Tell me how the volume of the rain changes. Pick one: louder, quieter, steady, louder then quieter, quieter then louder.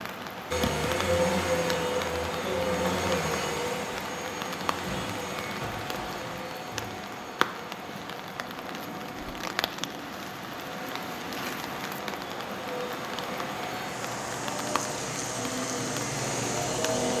steady.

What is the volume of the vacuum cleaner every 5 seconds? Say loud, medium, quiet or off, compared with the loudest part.
loud, medium, medium, loud.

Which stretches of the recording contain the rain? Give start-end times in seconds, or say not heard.
0.0-17.1.